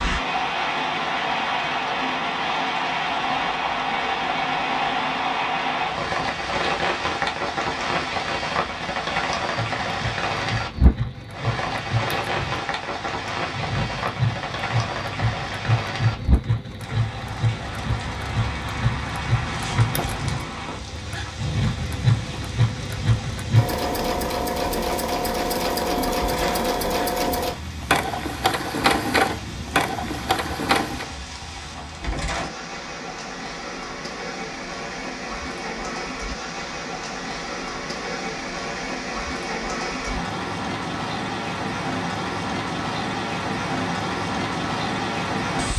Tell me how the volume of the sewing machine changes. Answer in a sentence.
The volume of the sewing machine goes up.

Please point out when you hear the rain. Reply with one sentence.
You can hear the rain from 0.0 to 45.7 s.